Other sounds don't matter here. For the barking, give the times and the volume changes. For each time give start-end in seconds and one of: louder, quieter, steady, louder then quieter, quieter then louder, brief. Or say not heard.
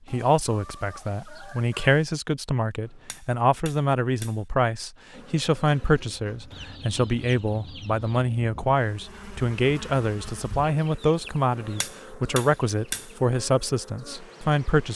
not heard.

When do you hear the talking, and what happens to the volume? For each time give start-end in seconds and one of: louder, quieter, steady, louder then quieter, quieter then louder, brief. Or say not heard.
0.1-14.9 steady.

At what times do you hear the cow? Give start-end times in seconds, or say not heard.
not heard.